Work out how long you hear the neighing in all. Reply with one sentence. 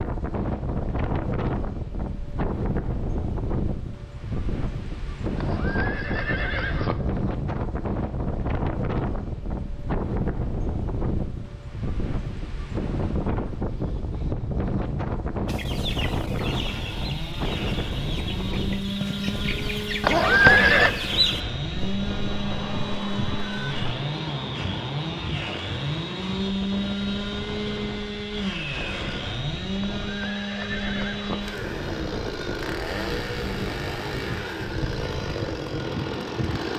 You can hear the neighing for 4 seconds altogether.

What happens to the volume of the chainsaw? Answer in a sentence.
The loudness of the chainsaw stays about the same.